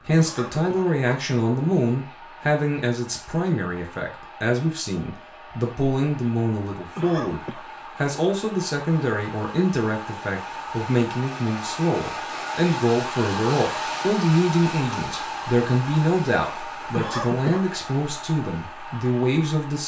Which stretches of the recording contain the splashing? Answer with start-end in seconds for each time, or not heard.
not heard.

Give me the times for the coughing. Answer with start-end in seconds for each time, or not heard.
0.1-0.9, 7.0-7.7, 16.9-17.6.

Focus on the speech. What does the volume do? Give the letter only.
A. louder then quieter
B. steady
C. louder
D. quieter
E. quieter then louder
B.